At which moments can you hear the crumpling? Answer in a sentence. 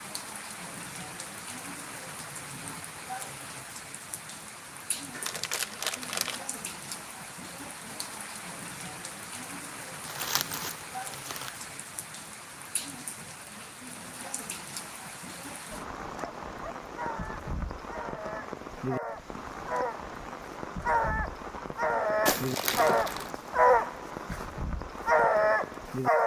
The crumpling can be heard from 5.2 to 6.4 s, from 10.1 to 11.6 s and from 22.2 to 23.3 s.